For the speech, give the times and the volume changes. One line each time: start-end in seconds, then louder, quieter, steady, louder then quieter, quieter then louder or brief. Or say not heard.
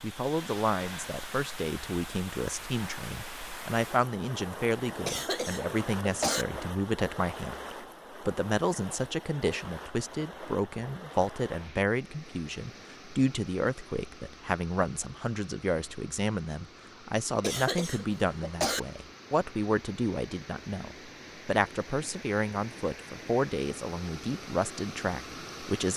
0.0-25.9 steady.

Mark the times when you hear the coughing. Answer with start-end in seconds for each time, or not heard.
5.0-6.5, 17.4-18.8.